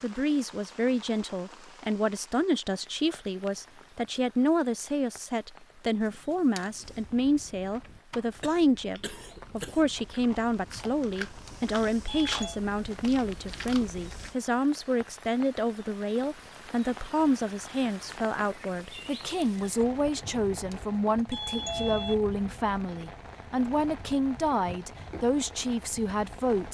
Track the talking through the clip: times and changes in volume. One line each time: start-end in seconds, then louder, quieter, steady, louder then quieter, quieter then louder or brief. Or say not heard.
0.0-26.6 steady.